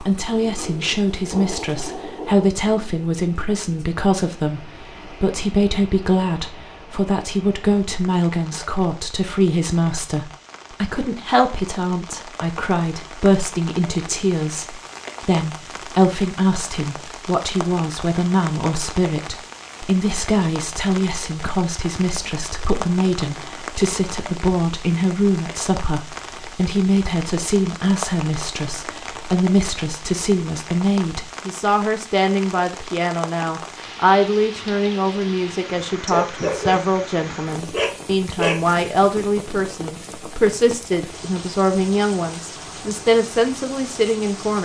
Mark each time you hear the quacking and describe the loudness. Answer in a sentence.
You can't hear the quacking here.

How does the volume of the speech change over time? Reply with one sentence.
The loudness of the speech stays about the same.